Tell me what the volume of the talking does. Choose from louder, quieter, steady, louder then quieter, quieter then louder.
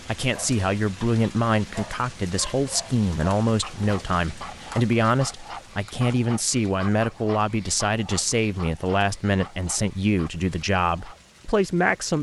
steady.